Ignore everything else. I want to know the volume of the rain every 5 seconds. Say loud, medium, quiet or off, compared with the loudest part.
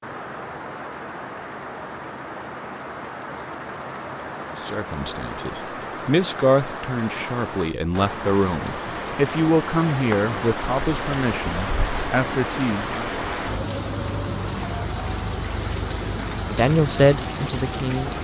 medium, loud, loud, loud.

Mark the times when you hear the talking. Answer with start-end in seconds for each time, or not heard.
4.6-13.1, 16.5-18.1.